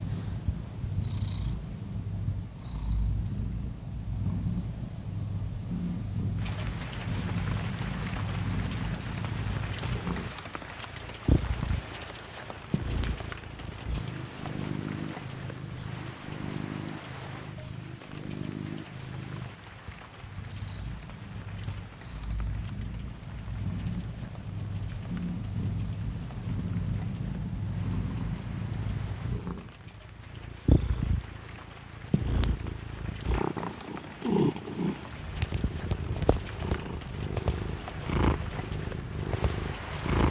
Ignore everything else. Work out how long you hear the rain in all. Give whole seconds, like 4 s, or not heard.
34 s.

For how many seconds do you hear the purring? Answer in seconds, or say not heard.
40 s.